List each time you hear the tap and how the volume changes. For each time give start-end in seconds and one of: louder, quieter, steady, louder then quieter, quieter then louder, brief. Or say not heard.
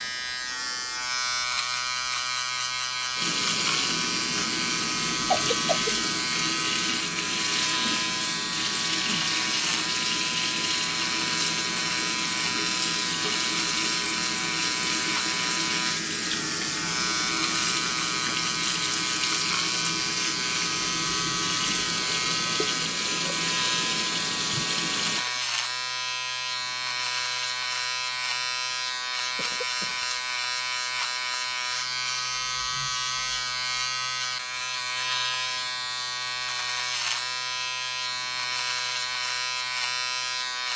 3.1-25.2 steady.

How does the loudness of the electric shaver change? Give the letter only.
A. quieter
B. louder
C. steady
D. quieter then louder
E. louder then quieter
C.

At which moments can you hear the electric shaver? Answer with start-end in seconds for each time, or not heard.
0.0-40.7.